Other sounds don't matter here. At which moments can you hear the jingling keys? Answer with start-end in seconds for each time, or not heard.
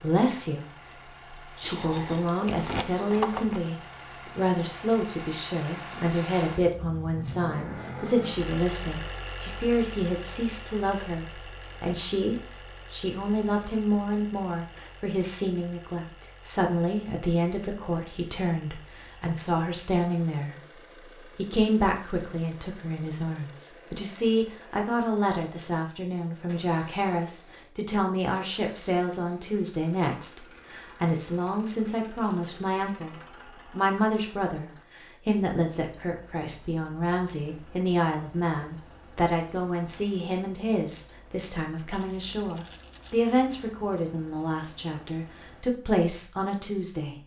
1.6-3.6, 41.9-43.4.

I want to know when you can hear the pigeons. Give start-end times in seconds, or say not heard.
not heard.